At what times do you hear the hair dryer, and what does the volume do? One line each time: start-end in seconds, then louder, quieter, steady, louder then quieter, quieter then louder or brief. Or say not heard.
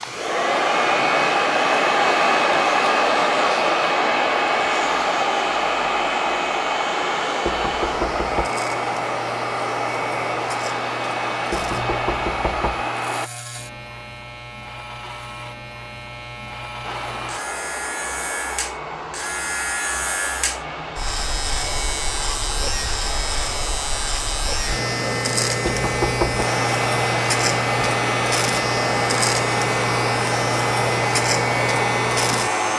0.0-13.3 quieter
16.8-32.7 louder.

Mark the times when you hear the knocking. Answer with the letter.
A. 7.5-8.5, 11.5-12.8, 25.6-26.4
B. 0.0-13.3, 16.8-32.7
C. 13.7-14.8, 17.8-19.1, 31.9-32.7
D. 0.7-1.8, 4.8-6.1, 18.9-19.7
A.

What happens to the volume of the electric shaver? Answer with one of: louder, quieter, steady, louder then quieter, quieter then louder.
louder.